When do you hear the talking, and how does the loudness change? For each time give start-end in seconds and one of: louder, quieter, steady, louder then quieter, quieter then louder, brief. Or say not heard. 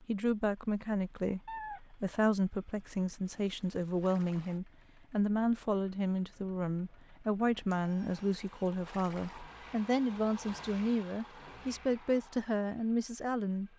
0.0-13.7 steady.